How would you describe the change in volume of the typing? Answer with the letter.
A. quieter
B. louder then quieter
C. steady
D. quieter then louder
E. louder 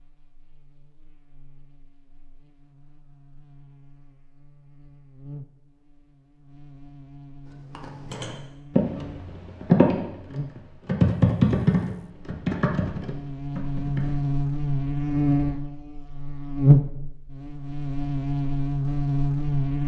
B.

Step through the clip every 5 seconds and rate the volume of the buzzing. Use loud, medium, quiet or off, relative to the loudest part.
quiet, quiet, medium, loud.